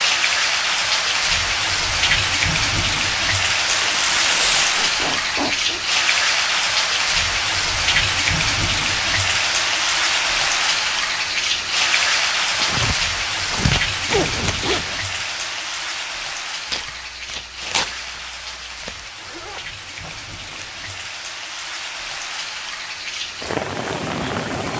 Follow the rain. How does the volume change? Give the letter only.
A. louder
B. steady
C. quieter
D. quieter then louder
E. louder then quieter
C.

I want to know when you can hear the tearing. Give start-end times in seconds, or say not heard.
3.5-4.8, 12.6-14.6, 16.6-19.1.